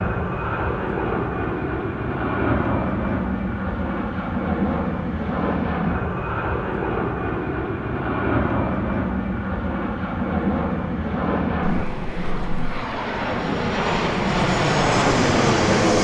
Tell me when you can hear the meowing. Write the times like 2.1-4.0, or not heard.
11.6-12.8.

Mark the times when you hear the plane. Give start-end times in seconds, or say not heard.
0.0-15.9.